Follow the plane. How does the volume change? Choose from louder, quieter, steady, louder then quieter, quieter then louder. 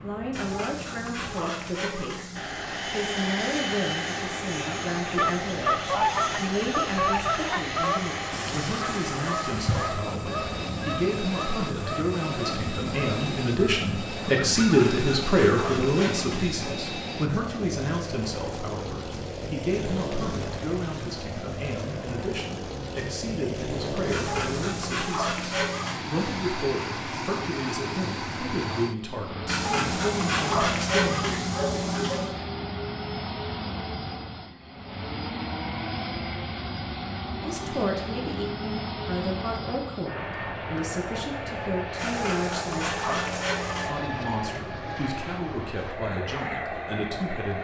steady.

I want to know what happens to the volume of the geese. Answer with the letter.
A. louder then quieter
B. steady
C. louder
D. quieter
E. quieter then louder
D.